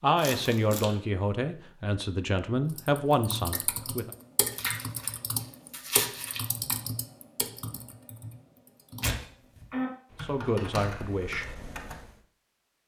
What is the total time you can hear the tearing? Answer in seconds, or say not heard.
3 s.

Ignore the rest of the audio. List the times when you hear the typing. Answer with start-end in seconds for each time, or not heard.
2.7-12.1.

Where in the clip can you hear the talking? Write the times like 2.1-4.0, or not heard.
0.0-4.1, 10.2-11.4.